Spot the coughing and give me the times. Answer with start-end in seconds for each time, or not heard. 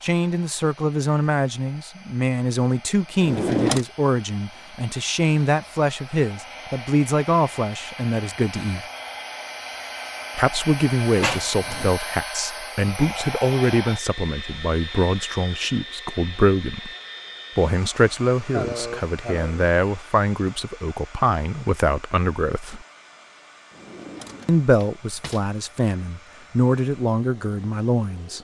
18.5-19.7.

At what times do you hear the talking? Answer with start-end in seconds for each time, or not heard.
0.0-8.8, 10.3-16.9, 17.6-22.9, 24.4-28.3.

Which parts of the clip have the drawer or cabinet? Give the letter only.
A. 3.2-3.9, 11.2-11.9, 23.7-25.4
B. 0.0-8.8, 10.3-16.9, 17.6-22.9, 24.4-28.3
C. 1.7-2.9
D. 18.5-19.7
A.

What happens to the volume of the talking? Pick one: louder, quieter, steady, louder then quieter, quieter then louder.
steady.